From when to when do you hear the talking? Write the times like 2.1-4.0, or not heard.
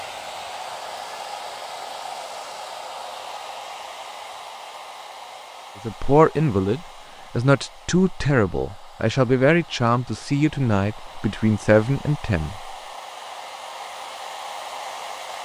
5.8-12.8.